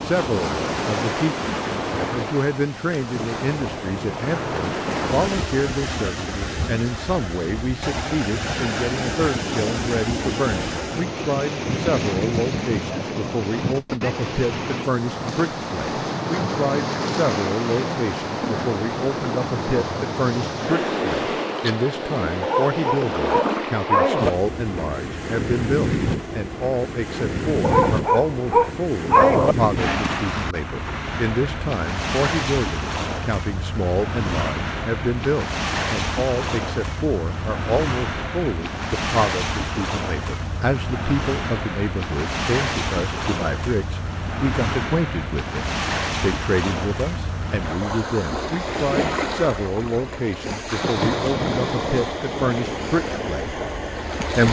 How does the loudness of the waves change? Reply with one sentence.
The volume of the waves stays about the same.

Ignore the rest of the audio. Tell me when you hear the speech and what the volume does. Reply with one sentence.
You can hear the speech from 0.0 to 54.4 s, at a steady volume.